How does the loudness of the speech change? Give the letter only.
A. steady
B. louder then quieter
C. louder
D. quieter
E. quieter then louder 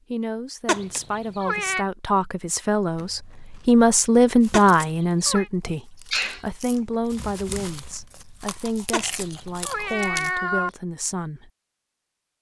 B.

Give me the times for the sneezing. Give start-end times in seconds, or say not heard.
5.7-6.5.